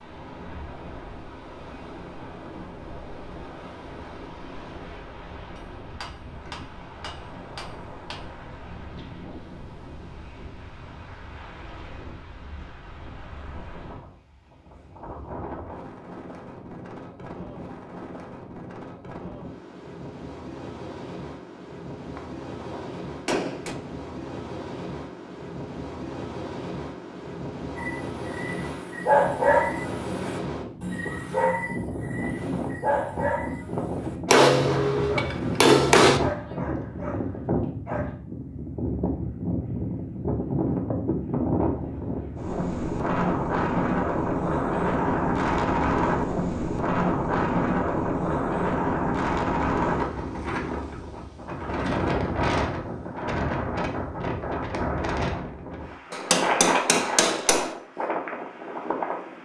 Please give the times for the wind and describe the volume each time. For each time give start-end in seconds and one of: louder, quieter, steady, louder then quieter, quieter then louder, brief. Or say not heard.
0.0-59.3 louder.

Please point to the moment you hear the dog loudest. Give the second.
29 s.